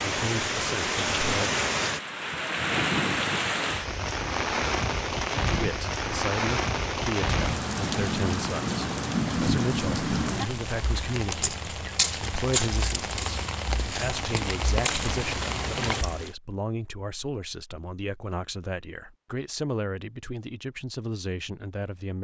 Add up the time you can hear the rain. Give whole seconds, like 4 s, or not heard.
16 s.